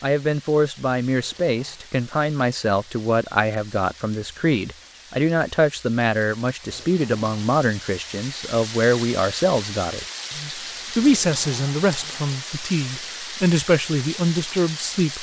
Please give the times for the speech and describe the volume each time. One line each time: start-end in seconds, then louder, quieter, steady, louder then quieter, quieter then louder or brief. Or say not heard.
0.0-15.1 steady.